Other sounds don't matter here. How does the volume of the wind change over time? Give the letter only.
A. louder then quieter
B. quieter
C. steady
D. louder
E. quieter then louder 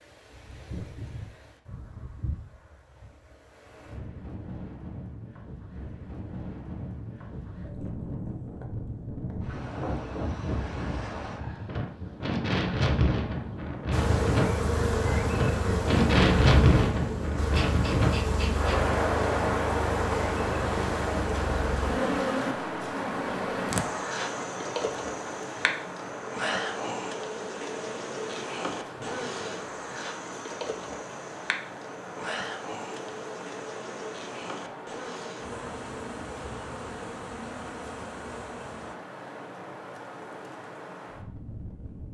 A.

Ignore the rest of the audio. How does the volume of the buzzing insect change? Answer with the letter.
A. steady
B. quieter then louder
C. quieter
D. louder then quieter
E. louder
C.